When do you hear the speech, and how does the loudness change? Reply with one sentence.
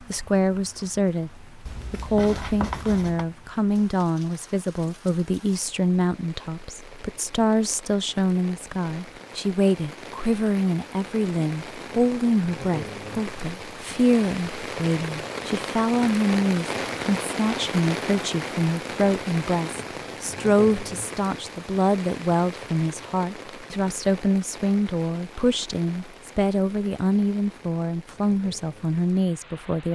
You can hear the speech from 0.1 to 29.9 s, at a steady volume.